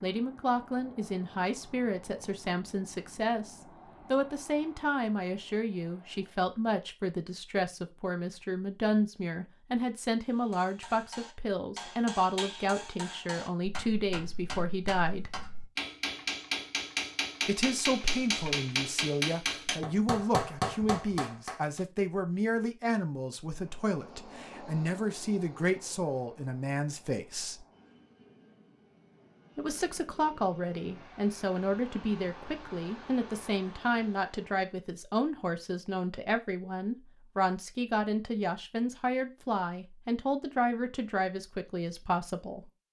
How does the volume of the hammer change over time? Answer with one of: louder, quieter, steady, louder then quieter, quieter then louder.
louder.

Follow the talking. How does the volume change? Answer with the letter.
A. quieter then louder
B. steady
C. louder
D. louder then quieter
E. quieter
B.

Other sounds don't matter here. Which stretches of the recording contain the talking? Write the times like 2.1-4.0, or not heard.
0.0-15.3, 17.4-27.6, 29.6-42.6.